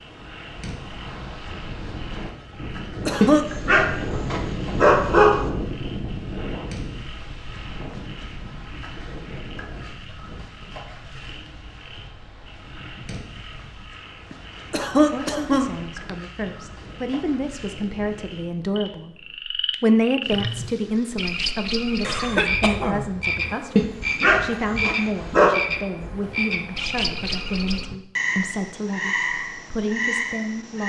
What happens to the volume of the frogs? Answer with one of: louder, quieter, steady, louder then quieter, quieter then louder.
louder.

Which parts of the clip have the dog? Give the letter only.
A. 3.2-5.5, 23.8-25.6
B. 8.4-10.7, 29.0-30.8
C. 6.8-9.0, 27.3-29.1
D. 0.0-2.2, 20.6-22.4
A.